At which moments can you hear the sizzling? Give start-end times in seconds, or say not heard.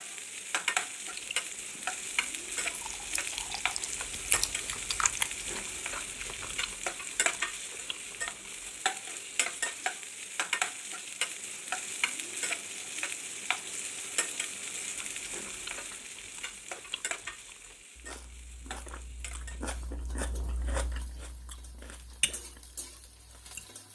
0.0-23.9.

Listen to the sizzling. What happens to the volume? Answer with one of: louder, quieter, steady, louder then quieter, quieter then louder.
quieter.